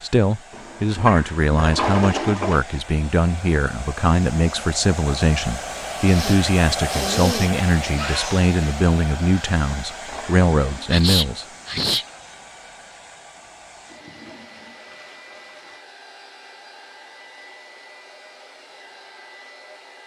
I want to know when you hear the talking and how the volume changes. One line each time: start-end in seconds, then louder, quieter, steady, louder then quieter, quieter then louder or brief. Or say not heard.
0.0-11.4 steady.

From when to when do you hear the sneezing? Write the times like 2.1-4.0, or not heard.
6.0-7.5, 10.9-12.1.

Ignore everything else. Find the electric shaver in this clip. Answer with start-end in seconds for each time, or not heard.
not heard.